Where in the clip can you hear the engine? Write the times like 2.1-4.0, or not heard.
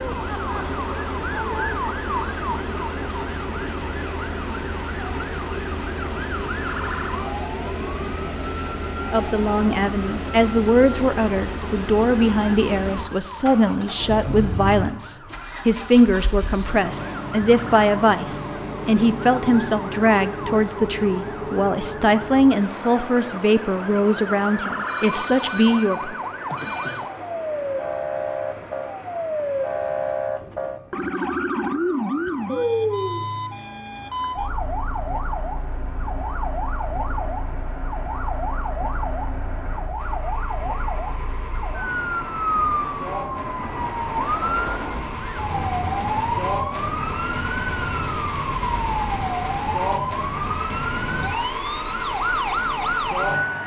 0.0-53.6.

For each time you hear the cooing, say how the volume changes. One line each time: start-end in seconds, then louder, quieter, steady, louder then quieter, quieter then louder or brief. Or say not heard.
not heard.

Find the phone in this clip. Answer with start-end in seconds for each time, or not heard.
24.9-27.1.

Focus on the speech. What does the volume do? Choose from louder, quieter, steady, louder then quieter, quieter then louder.
steady.